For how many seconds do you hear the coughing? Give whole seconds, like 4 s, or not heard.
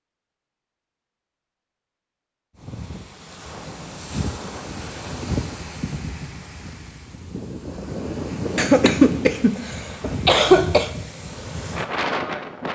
2 s.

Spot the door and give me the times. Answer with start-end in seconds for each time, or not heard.
not heard.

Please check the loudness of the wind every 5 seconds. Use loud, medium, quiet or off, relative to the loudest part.
medium, loud, loud.